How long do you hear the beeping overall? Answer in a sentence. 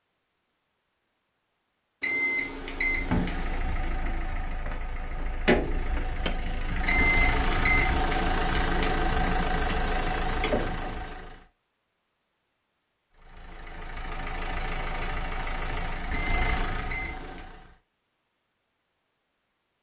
The beeping can be heard for 5 seconds in total.